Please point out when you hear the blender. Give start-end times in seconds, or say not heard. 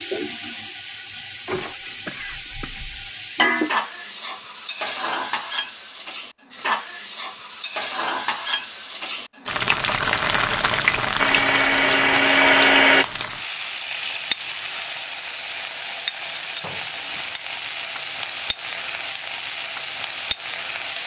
11.2-13.1.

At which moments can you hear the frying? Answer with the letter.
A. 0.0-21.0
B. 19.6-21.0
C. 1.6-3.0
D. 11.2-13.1
A.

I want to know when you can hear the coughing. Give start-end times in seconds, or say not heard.
1.6-3.0.